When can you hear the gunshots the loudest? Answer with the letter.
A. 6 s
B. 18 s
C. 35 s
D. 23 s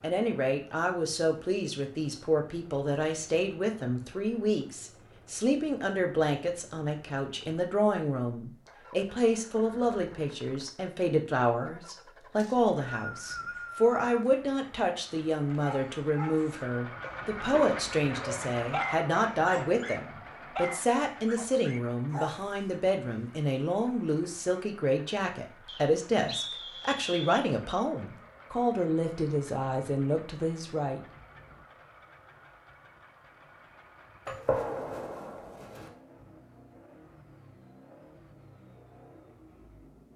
C.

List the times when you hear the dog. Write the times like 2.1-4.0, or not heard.
15.5-23.2.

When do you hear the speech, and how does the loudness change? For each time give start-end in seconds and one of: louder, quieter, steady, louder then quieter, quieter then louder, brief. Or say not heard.
0.0-31.0 steady.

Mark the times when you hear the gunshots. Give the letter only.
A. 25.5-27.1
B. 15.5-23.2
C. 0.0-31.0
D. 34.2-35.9
D.